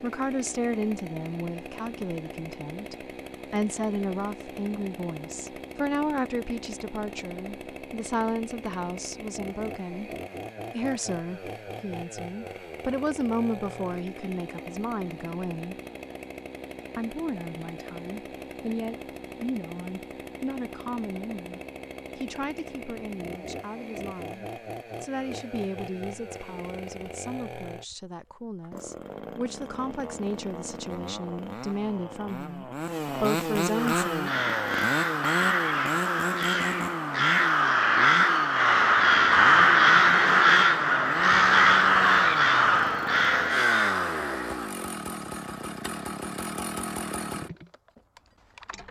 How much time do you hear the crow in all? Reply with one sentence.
The crow can be heard for 11 seconds in total.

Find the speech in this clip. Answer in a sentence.
You can hear the speech from 0.0 to 10.1 s, from 10.7 to 15.8 s and from 16.9 to 34.3 s.